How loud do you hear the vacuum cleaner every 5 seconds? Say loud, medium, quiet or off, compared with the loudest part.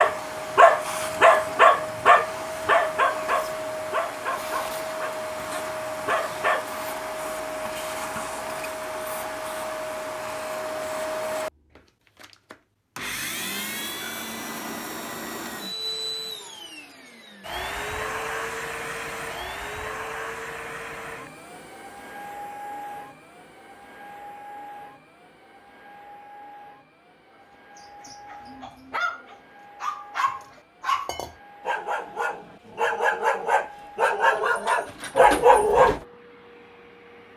loud, loud, loud, loud, medium, quiet, quiet, quiet.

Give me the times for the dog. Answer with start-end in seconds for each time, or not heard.
0.0-6.7, 27.8-36.0.